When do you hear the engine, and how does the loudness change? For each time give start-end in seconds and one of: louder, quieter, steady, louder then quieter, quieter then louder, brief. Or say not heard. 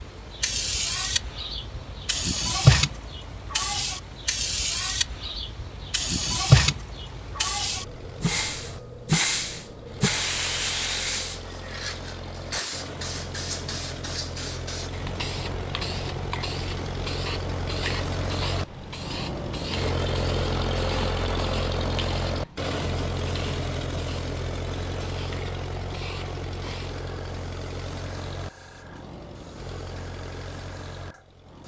0.0-31.6 louder then quieter.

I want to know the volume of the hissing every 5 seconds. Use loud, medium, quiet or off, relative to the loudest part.
loud, loud, medium, medium, quiet, quiet, quiet.